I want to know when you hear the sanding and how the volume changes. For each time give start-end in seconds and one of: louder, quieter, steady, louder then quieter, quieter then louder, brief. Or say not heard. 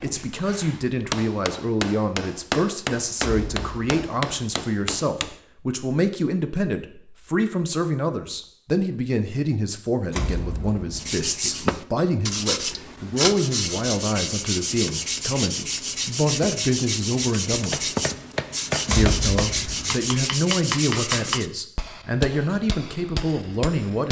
10.9-21.5 steady.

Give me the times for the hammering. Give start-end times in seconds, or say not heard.
0.0-5.3, 17.7-24.0.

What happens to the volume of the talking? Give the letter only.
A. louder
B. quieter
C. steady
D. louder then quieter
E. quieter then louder
C.